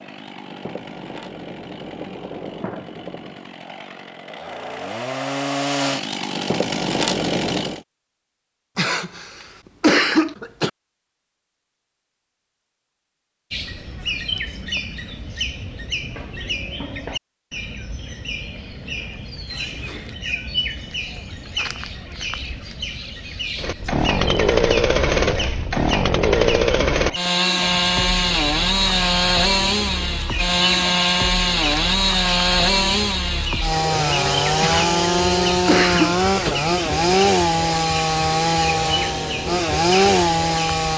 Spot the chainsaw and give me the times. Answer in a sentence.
The chainsaw can be heard from 0.0 to 7.8 s and from 23.6 to 40.9 s.